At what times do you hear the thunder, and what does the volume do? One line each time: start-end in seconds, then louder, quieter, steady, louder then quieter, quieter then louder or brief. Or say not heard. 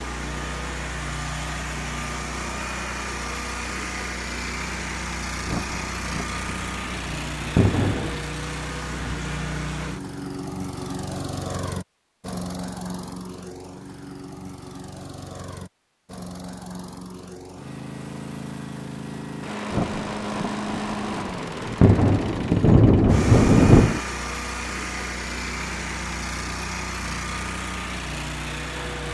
5.5-8.2 brief
19.7-24.0 louder.